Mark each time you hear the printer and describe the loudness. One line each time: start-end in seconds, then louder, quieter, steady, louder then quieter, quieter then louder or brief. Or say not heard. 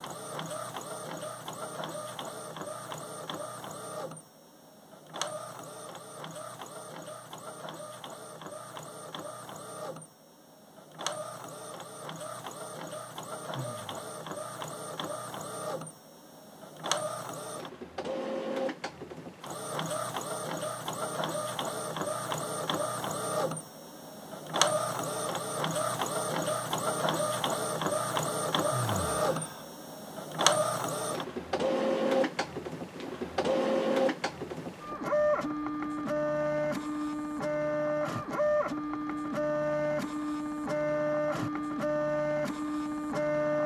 0.0-43.6 louder.